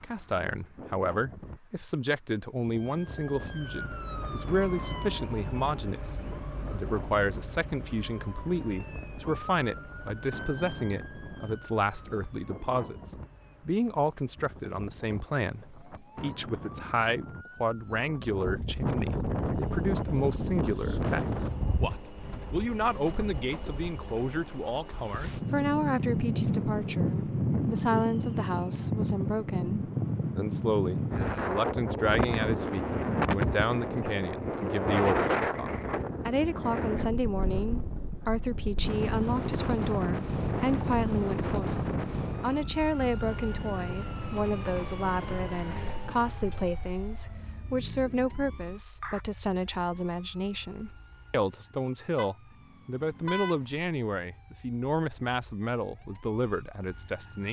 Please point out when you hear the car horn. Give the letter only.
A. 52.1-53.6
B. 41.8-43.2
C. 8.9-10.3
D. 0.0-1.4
A.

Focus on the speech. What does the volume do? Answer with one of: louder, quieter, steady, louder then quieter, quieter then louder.
steady.